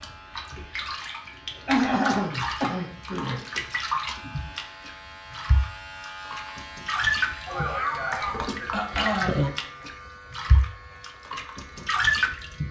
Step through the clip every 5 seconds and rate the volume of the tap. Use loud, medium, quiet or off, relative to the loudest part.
medium, loud, loud.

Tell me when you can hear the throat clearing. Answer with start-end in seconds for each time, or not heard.
1.6-3.4, 7.5-9.4.